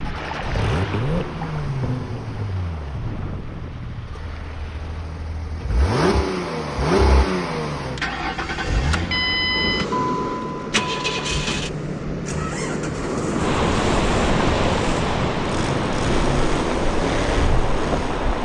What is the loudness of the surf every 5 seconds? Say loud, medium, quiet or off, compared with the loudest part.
medium, medium, loud, loud.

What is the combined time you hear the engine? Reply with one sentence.
You can hear the engine for 18 seconds altogether.